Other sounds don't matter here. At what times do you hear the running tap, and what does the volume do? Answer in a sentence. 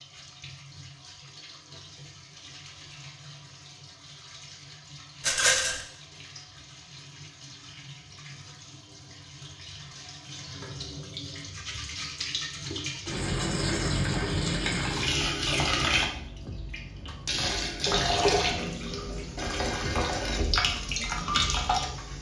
You can hear the running tap from 0.0 to 22.1 s, getting louder.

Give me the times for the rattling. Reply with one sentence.
You can hear the rattling from 5.2 to 5.8 s.